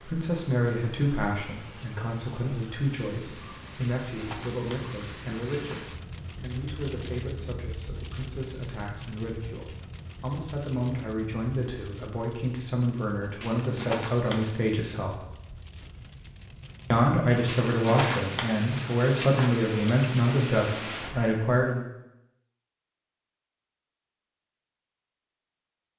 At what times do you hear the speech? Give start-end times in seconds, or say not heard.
0.1-15.2, 16.9-21.9.